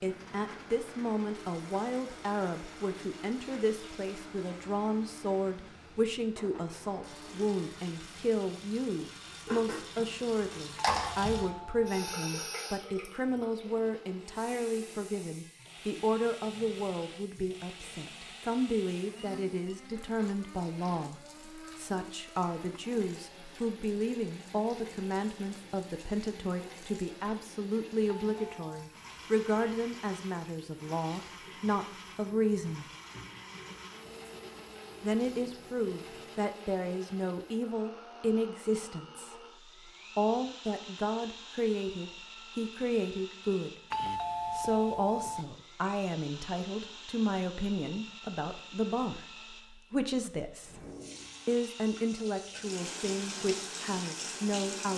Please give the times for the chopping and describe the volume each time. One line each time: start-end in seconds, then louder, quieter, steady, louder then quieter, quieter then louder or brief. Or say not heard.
not heard.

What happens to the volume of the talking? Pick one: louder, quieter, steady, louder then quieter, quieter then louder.
steady.